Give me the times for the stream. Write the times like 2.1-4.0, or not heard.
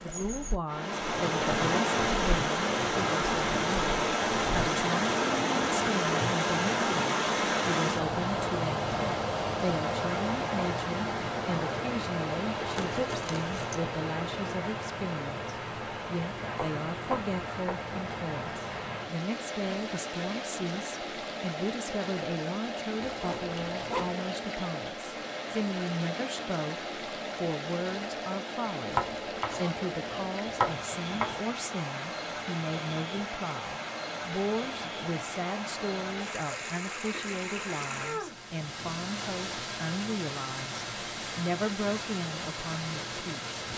0.0-43.7.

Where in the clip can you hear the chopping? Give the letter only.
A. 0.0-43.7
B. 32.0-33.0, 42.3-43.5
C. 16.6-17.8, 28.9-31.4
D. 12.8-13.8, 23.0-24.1
C.